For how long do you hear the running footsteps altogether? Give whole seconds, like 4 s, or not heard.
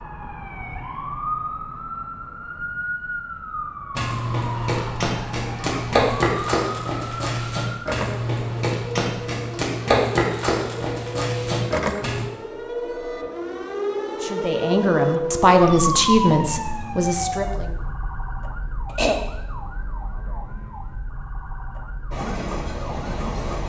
8 s.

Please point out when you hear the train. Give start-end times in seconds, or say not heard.
22.1-23.6.